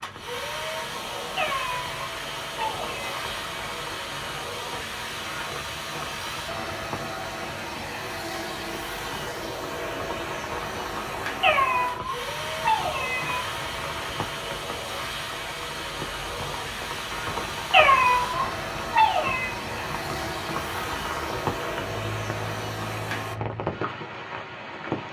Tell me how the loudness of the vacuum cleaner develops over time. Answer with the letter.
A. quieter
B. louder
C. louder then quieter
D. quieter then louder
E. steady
E.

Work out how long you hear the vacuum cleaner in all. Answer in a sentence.
You can hear the vacuum cleaner for 23 seconds altogether.